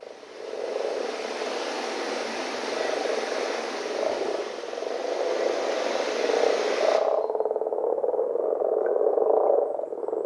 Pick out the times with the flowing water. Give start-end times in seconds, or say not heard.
0.0-7.0.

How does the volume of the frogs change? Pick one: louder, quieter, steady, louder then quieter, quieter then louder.
louder.